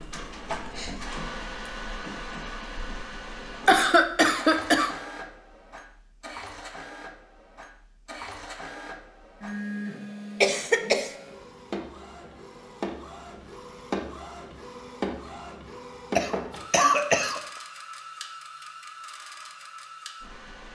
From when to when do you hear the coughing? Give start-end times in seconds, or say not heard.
3.6-4.9, 10.4-11.1, 16.1-17.4.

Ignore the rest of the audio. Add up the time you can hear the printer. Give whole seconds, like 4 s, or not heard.
21 s.